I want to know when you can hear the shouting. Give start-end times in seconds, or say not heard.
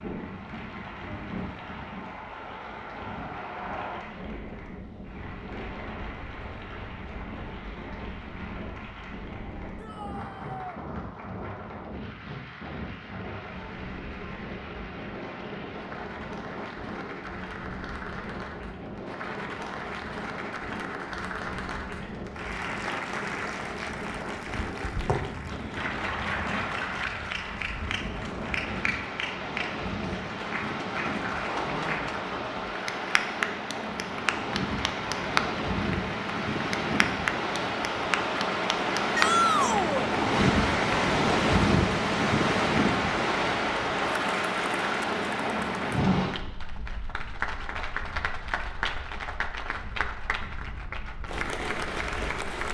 9.8-10.8, 39.1-40.1.